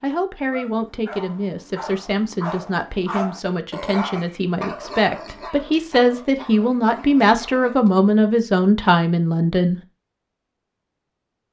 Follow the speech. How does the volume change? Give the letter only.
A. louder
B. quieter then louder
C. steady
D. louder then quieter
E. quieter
A.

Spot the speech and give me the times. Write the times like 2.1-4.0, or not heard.
0.0-9.8.